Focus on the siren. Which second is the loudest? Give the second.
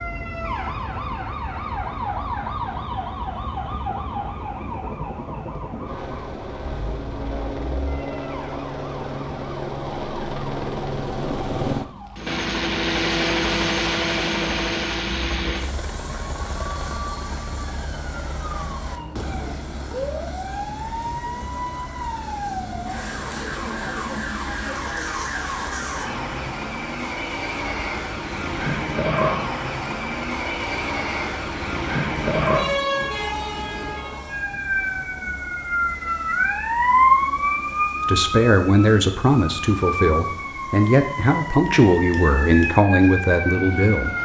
37 s.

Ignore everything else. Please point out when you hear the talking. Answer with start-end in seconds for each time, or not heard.
38.0-44.1.